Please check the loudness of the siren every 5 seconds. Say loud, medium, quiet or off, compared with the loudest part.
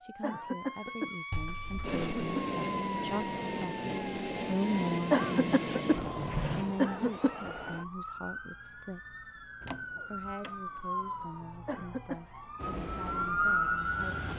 medium, medium, loud.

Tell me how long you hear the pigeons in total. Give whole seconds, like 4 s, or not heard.
not heard.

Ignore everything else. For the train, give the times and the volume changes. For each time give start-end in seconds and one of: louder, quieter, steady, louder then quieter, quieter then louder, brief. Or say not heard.
1.8-6.1 steady
12.6-14.3 brief.